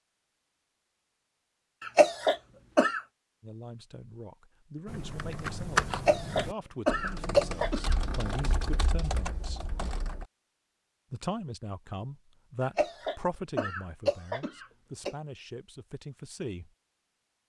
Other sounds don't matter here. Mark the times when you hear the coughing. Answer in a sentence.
You can hear the coughing from 1.8 to 3.0 s, from 5.9 to 8.0 s and from 12.6 to 15.2 s.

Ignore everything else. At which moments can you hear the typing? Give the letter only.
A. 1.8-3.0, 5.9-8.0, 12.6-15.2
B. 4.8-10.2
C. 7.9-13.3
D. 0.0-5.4
B.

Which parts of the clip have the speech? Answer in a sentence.
The speech can be heard from 3.4 to 9.7 s and from 11.1 to 16.7 s.